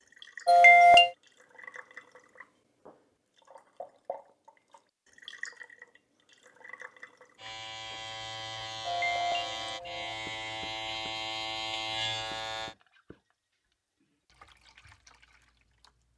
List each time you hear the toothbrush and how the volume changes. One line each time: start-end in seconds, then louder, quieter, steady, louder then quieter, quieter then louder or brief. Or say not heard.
not heard.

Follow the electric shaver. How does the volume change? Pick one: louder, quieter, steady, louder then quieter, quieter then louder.
louder.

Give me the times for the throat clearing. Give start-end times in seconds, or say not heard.
0.5-1.1, 8.8-10.1.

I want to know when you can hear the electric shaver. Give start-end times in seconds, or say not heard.
7.3-12.8.